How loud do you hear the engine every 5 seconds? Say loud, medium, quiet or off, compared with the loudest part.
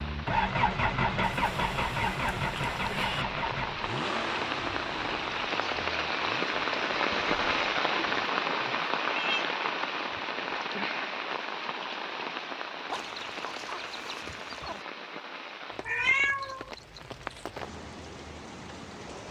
loud, quiet, off, off.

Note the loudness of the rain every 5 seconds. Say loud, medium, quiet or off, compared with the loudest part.
medium, loud, medium, quiet.